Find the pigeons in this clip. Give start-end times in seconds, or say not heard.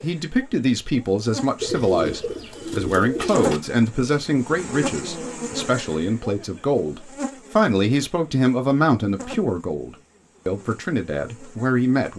1.6-3.6.